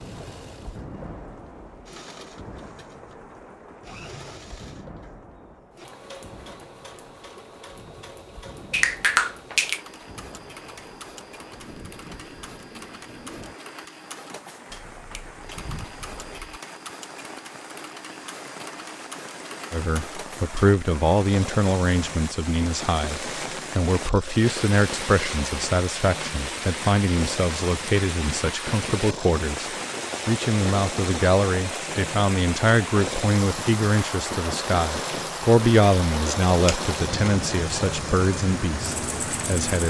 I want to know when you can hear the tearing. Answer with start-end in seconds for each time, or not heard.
not heard.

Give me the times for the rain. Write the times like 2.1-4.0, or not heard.
0.0-39.8.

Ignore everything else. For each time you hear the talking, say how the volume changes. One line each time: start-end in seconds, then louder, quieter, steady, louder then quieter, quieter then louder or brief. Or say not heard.
19.7-39.8 steady.